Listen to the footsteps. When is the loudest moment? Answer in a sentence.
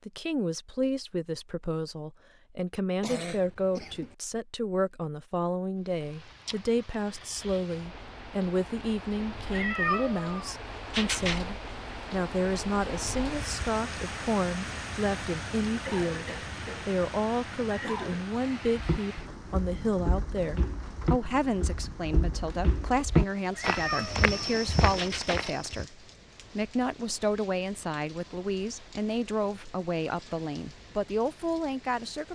The volume of the footsteps peaks at 23 seconds.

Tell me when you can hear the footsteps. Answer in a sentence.
You can hear the footsteps from 18.7 to 25.9 s.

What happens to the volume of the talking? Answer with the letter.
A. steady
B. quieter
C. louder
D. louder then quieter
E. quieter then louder
A.